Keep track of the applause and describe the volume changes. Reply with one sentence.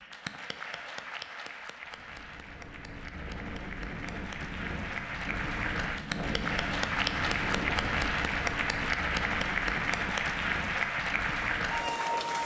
The loudness of the applause goes up.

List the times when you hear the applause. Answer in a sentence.
The applause can be heard from 0.0 to 12.4 s.